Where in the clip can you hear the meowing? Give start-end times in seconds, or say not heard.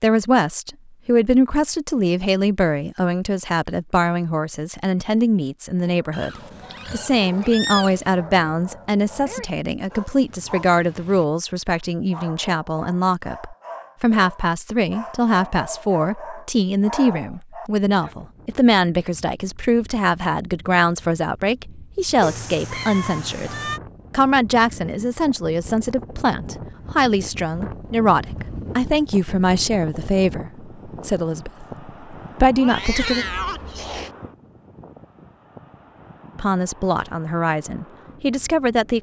6.1-8.2, 22.2-23.8, 32.6-34.1.